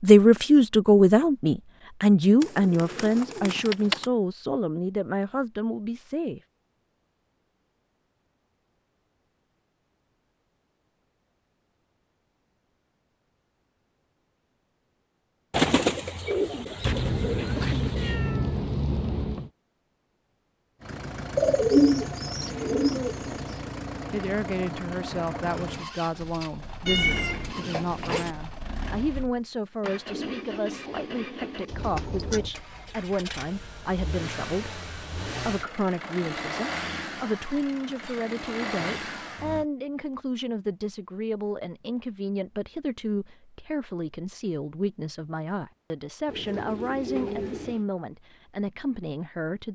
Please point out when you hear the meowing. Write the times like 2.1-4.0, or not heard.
16.8-19.5, 26.9-28.4.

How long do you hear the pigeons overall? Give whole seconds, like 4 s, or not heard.
10 s.